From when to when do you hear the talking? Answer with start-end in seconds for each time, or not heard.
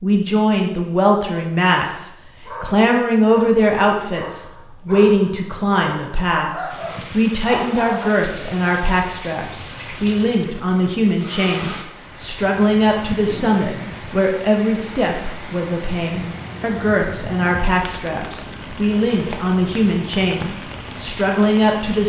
0.0-22.0.